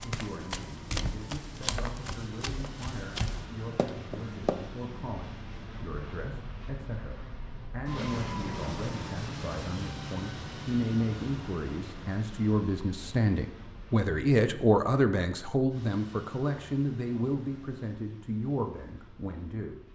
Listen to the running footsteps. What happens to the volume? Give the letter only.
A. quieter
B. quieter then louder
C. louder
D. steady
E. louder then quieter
B.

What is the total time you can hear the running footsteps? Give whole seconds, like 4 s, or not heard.
5 s.